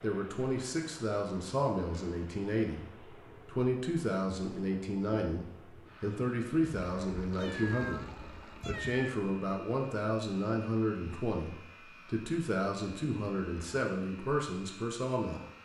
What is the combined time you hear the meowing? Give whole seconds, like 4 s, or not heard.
2 s.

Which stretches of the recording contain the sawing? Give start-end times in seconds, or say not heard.
not heard.